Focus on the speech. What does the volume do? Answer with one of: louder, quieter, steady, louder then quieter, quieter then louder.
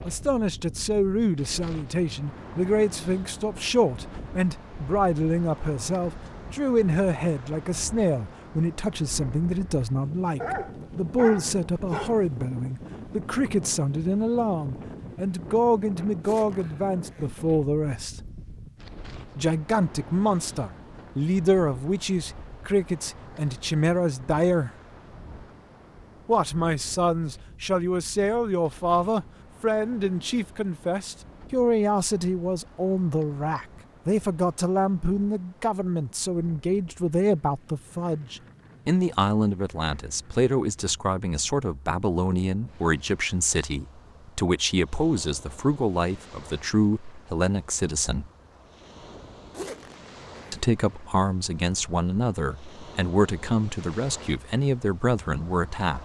steady.